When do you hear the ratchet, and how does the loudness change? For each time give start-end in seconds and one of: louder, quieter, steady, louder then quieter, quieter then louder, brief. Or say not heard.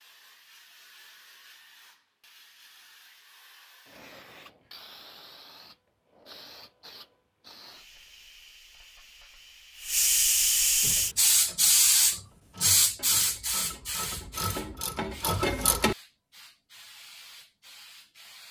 10.8-15.9 louder.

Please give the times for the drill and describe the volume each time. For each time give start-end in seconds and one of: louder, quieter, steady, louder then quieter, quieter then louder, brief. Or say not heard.
not heard.